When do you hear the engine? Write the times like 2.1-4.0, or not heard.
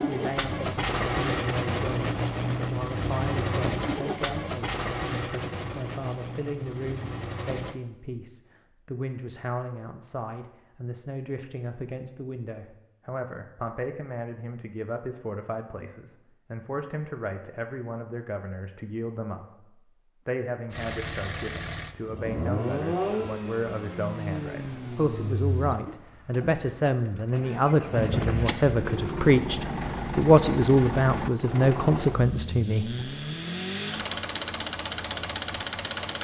0.0-7.8, 20.7-36.1.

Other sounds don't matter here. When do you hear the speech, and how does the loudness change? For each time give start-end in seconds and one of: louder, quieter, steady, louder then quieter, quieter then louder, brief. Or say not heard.
0.1-33.0 louder.